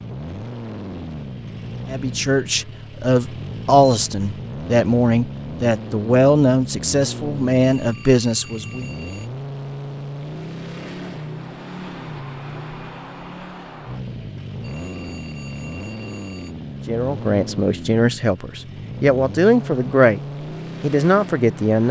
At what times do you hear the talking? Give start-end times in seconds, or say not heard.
1.9-8.8, 16.9-20.2, 20.8-21.8.